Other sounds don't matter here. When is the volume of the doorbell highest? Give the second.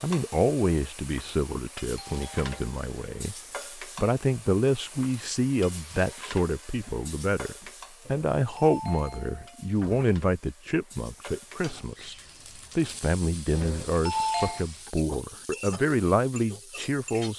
14 s.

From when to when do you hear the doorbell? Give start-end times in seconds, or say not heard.
1.9-2.5, 8.1-10.1, 13.5-14.7.